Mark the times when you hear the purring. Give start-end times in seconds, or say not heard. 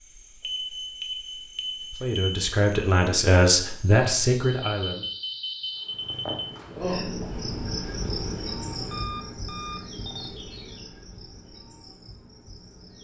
5.9-9.2.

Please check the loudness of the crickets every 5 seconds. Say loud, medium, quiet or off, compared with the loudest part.
quiet, loud, medium.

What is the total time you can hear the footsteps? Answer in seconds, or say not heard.
not heard.